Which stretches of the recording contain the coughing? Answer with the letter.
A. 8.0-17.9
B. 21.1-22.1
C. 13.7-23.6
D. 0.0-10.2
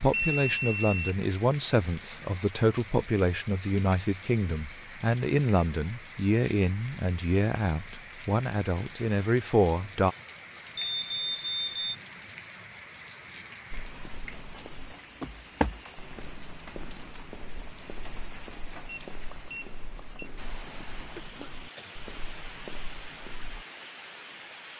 B.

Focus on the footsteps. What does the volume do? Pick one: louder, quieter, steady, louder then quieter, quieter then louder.
quieter.